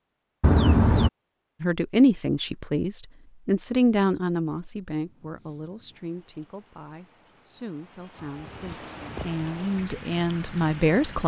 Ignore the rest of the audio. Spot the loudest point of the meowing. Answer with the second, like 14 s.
1 s.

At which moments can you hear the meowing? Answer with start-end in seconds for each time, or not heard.
0.4-1.1, 8.2-9.4.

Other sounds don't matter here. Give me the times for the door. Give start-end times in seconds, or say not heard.
not heard.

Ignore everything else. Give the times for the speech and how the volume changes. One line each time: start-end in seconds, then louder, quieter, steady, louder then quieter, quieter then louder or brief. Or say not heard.
1.6-11.2 quieter then louder.